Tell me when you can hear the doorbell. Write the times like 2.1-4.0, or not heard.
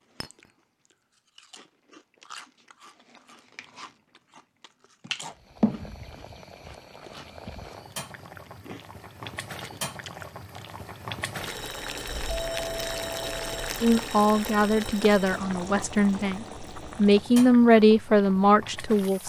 12.3-13.7.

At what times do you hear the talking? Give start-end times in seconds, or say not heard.
13.8-19.2.